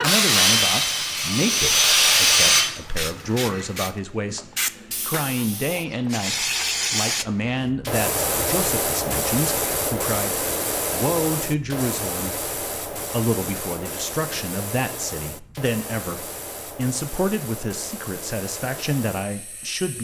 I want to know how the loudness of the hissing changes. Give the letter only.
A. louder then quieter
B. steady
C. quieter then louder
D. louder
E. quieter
A.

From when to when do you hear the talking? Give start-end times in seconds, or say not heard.
0.0-19.9.